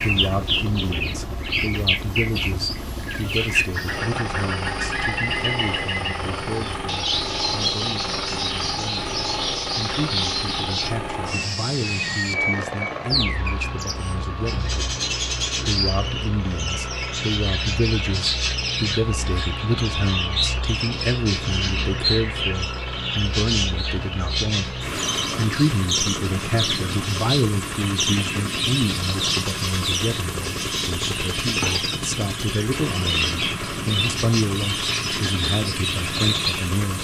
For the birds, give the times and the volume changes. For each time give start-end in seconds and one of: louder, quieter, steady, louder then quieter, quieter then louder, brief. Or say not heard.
0.0-36.7 steady.